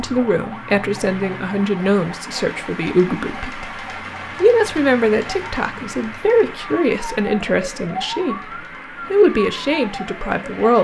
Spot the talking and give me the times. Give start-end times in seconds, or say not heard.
0.0-3.7, 4.4-10.7.